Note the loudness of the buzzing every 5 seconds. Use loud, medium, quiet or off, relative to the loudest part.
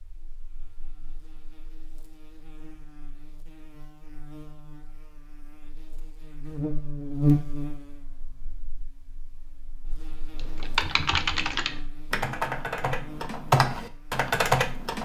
quiet, loud, quiet.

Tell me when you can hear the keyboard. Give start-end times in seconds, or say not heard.
10.3-15.0.